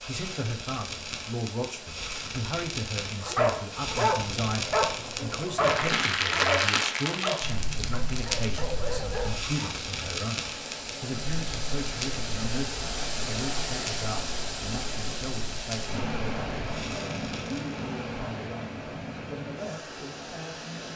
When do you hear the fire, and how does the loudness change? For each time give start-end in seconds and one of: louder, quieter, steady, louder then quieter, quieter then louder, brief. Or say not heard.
0.0-17.9 louder then quieter.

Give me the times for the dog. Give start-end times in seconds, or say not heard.
3.2-9.6.